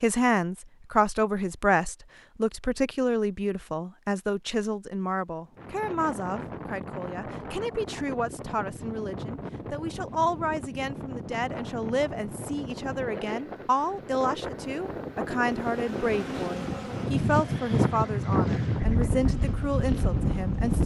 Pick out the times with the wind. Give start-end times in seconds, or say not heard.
5.5-20.8.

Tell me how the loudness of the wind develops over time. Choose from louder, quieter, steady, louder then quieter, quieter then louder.
louder.